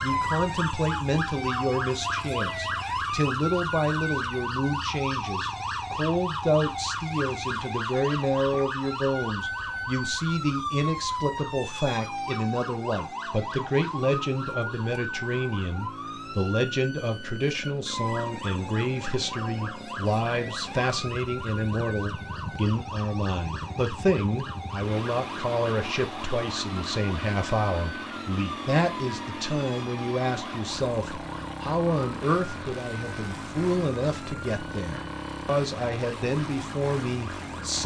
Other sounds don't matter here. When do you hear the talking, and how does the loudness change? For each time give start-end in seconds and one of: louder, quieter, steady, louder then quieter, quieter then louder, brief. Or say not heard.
0.0-37.8 steady.